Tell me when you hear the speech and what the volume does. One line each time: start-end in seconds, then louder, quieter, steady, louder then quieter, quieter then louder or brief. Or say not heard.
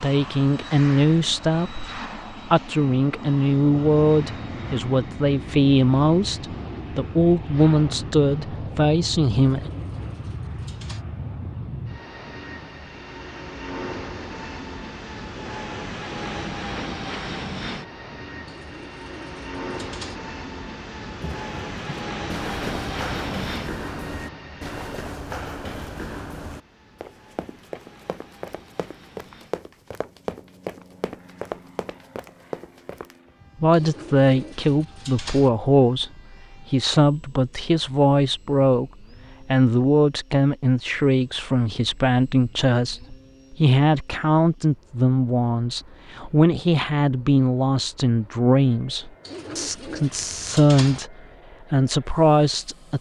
0.0-9.7 steady
33.6-36.1 brief
36.7-52.9 steady.